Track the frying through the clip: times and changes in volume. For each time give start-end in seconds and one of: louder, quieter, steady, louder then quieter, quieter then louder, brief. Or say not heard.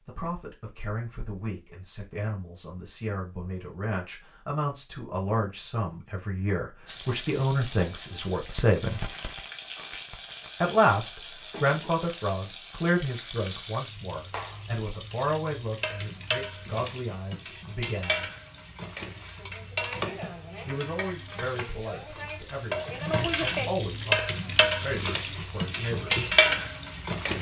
6.8-27.3 louder.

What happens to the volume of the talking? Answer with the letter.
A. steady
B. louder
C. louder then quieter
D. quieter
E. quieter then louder
C.